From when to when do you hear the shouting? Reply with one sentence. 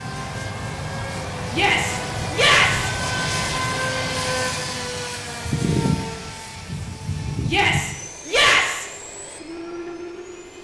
The shouting can be heard from 1.5 to 2.9 s and from 7.5 to 8.8 s.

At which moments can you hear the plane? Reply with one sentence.
You can hear the plane from 0.0 to 10.5 s.